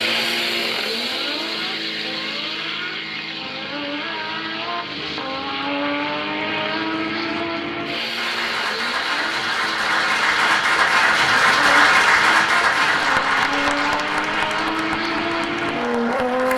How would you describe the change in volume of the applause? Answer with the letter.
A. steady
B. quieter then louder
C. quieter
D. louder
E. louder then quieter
E.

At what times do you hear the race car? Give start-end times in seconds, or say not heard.
0.0-16.5.